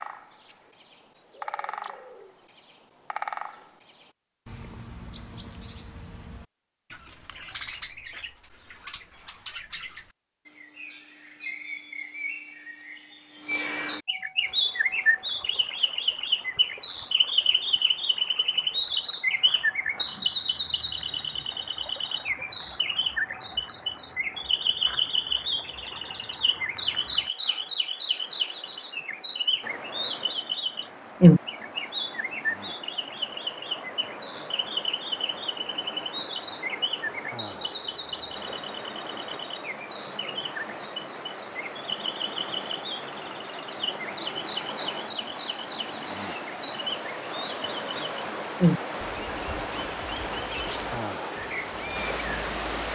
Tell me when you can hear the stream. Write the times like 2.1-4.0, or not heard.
14.3-52.9.